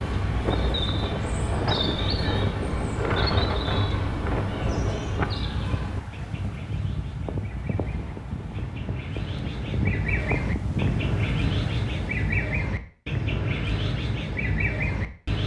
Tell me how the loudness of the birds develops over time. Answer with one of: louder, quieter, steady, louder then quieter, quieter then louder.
quieter then louder.